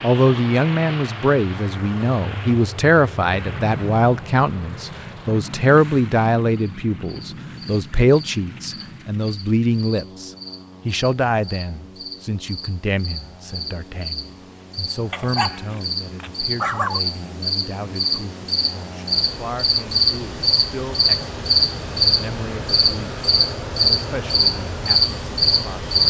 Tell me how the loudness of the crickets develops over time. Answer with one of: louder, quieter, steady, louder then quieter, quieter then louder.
louder.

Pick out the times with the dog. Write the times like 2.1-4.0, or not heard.
15.1-17.0.